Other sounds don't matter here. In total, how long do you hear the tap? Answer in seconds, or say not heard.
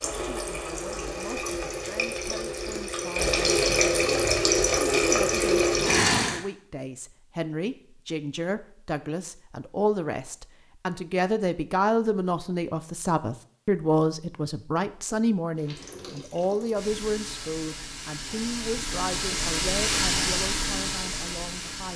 13 s.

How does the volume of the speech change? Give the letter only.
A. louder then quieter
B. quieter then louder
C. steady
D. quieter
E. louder
A.